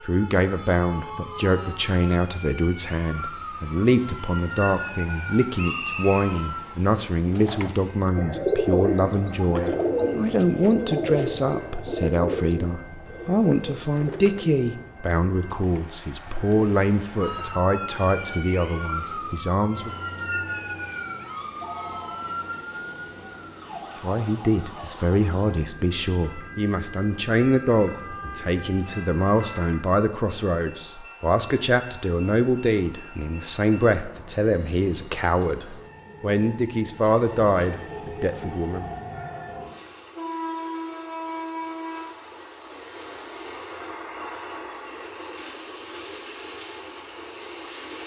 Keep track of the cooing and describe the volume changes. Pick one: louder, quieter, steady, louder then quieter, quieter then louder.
quieter.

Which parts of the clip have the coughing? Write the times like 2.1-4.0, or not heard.
not heard.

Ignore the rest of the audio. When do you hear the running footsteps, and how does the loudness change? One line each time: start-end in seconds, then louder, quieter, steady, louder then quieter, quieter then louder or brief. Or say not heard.
not heard.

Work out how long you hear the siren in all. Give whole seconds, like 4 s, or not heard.
19 s.